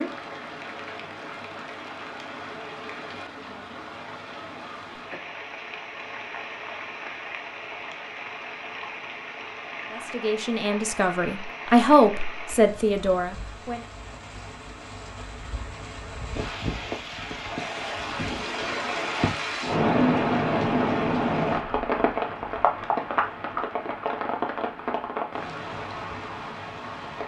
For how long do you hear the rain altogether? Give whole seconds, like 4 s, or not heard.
27 s.